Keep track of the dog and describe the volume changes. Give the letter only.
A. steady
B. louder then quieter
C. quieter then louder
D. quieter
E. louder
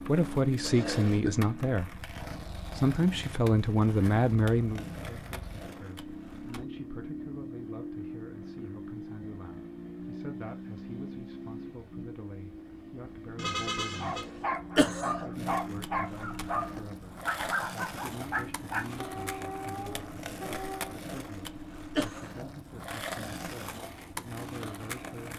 D.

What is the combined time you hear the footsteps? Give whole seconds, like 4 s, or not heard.
not heard.